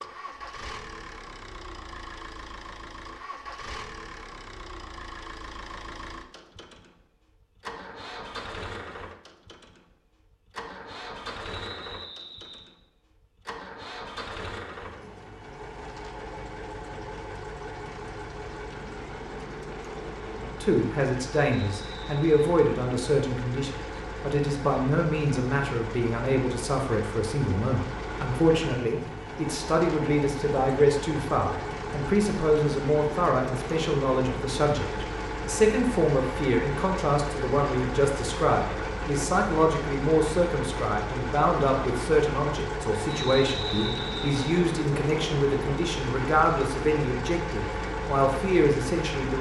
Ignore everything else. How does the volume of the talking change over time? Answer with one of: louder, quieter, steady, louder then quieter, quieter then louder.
steady.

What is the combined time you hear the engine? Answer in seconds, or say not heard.
49 s.